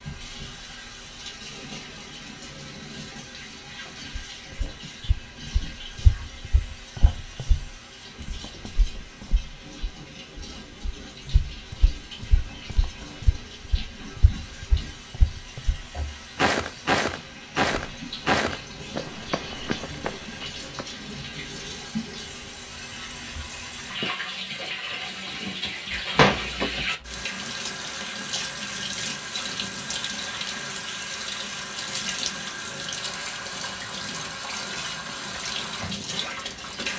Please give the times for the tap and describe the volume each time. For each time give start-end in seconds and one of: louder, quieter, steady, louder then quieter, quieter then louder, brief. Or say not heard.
0.0-36.9 louder.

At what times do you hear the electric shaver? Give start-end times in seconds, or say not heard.
not heard.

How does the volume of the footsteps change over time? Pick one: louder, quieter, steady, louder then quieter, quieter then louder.
louder then quieter.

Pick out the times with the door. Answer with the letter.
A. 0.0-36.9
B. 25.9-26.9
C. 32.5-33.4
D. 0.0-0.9
B.